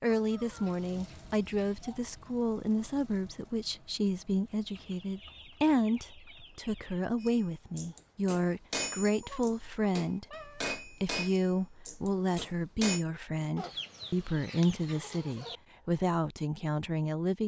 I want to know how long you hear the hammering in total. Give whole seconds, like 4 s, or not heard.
6 s.